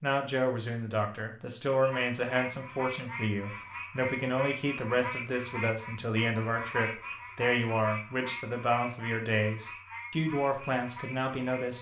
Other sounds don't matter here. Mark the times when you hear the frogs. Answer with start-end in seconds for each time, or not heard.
1.8-11.7.